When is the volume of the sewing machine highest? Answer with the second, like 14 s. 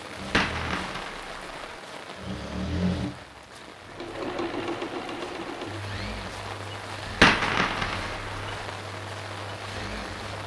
3 s.